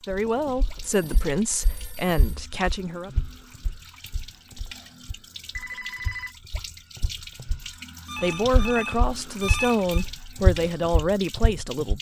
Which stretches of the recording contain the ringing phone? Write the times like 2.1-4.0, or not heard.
0.8-2.4, 4.3-6.3, 8.1-10.1.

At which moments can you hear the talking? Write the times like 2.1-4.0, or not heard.
0.0-3.1, 8.2-11.9.